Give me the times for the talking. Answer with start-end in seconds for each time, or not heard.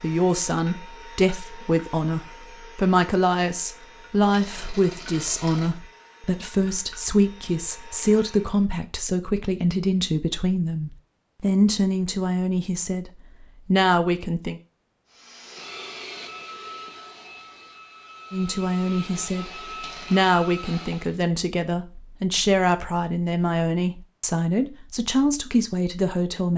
0.0-14.6, 18.3-19.5, 20.1-26.5.